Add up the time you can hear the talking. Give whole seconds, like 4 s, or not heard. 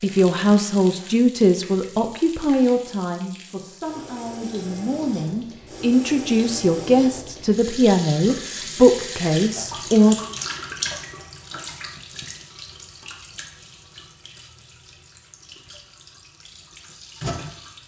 10 s.